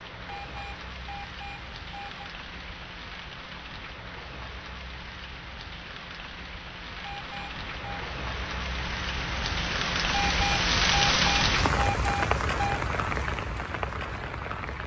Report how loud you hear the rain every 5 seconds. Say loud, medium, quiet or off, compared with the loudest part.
quiet, medium, loud.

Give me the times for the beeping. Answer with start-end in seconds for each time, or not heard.
0.2-2.3, 7.0-8.1, 10.1-12.8.